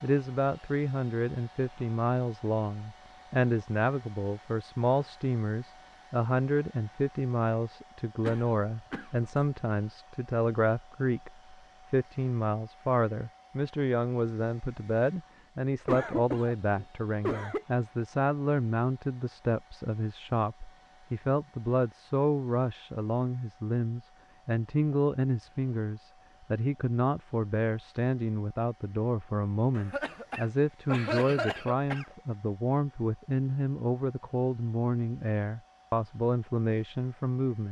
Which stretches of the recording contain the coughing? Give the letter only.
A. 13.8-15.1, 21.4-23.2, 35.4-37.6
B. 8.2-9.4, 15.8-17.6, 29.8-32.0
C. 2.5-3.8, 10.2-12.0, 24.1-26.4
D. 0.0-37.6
B.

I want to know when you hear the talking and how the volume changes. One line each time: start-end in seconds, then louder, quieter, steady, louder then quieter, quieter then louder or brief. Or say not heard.
0.0-37.6 steady.